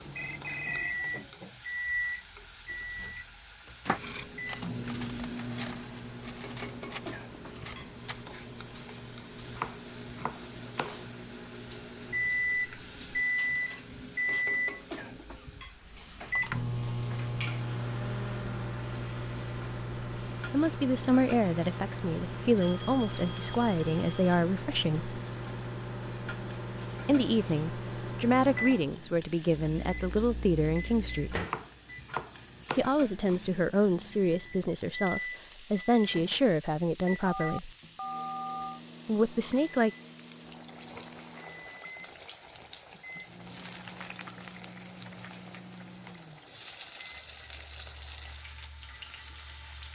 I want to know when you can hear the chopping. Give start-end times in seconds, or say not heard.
9.4-11.1, 31.4-33.5.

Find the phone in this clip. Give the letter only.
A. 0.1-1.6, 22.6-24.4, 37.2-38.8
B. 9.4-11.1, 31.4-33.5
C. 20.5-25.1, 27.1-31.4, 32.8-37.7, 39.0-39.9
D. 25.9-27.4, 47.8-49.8
A.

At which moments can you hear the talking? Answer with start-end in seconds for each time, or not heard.
20.5-25.1, 27.1-31.4, 32.8-37.7, 39.0-39.9.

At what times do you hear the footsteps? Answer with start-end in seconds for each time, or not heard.
not heard.